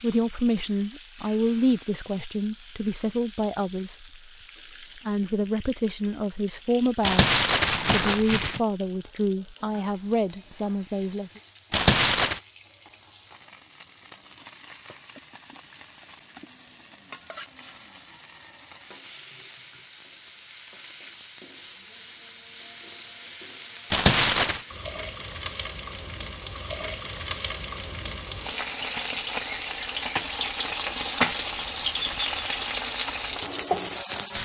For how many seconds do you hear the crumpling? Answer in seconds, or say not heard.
3 s.